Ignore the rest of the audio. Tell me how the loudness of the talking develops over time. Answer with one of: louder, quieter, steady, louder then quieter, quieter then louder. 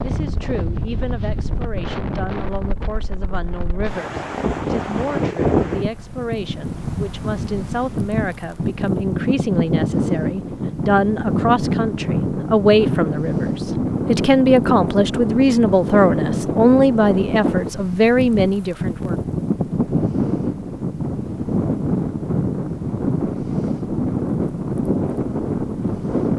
louder.